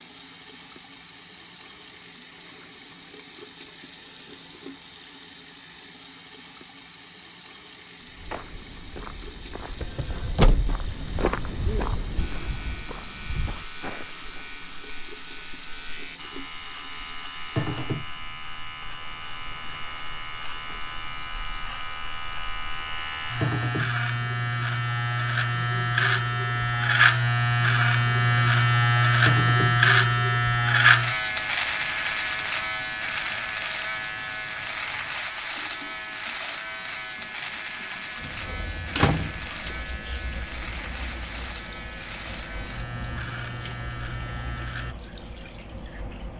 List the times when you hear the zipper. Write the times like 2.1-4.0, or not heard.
not heard.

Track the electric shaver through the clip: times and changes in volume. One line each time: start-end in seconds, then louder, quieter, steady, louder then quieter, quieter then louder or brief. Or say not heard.
12.2-45.0 louder then quieter.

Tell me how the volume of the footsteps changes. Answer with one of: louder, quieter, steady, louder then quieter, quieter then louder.
louder then quieter.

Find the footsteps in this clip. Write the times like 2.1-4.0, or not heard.
8.0-14.4.